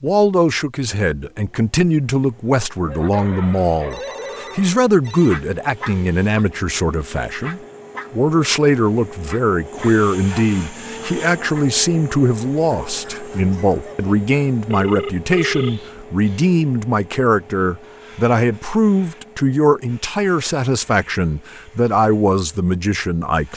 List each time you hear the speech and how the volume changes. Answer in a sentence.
The speech can be heard from 0.0 to 23.5 s, at a steady volume.